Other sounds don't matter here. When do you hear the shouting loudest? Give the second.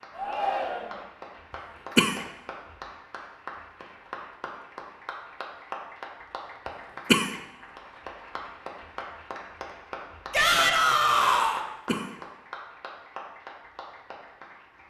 11 s.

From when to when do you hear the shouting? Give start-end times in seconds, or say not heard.
0.1-1.1, 10.3-11.7.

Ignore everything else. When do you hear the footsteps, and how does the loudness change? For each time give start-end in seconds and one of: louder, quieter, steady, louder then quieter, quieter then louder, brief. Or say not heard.
not heard.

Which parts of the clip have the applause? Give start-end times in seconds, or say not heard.
0.0-14.8.